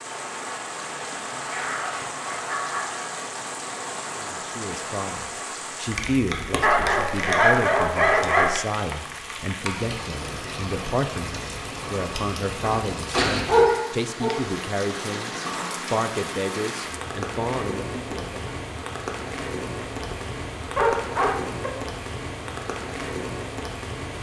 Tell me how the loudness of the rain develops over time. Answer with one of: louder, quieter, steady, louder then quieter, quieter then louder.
steady.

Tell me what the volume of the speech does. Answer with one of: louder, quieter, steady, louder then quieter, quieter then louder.
steady.